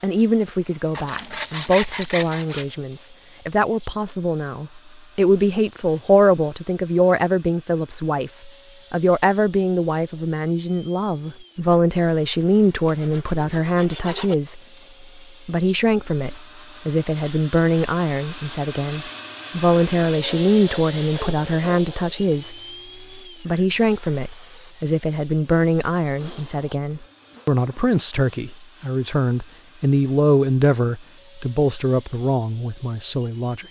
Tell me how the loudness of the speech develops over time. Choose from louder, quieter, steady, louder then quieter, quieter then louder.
steady.